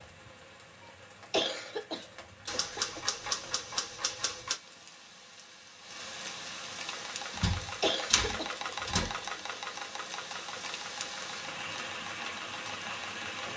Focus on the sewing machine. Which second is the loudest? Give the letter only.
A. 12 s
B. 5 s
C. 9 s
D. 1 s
C.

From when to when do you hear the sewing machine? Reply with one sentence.
The sewing machine can be heard from 6.8 to 13.5 s.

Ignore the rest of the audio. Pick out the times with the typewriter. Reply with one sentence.
You can hear the typewriter from 2.5 to 4.5 s and from 7.3 to 9.2 s.